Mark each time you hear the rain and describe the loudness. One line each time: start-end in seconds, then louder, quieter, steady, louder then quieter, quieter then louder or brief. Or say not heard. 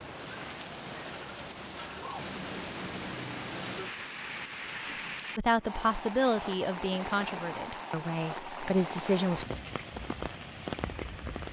0.0-11.4 steady.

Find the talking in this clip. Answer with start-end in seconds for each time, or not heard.
5.3-9.4.